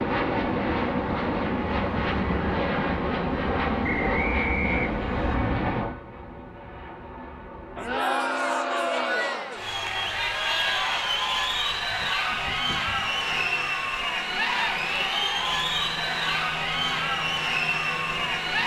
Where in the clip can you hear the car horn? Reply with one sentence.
The car horn can't be heard in this clip.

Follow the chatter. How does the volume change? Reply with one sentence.
The loudness of the chatter stays about the same.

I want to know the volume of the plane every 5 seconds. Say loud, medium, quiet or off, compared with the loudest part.
loud, medium, quiet, quiet.